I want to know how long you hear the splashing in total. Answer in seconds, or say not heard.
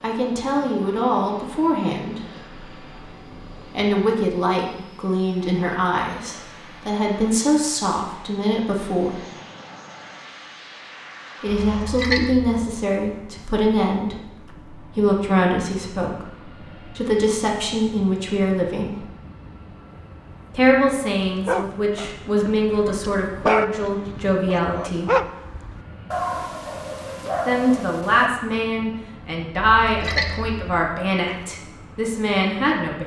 2 s.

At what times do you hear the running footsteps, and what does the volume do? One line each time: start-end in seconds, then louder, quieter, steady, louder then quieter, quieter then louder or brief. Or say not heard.
not heard.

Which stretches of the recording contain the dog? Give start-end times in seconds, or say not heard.
21.4-28.3.